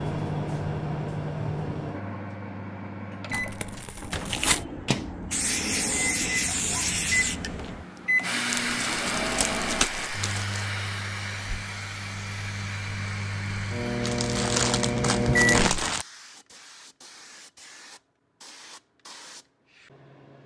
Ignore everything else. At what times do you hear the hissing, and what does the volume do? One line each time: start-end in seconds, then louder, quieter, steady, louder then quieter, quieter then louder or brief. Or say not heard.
4.0-20.4 quieter.